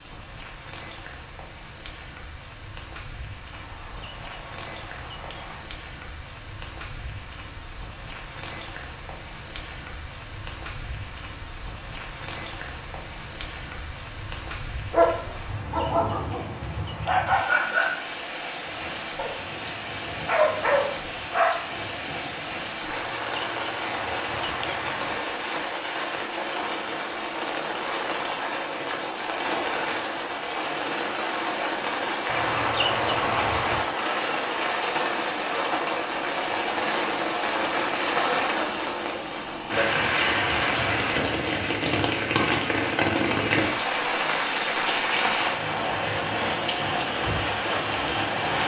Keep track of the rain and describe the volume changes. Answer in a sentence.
The loudness of the rain goes up.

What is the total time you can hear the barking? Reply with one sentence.
The barking can be heard for 7 seconds in total.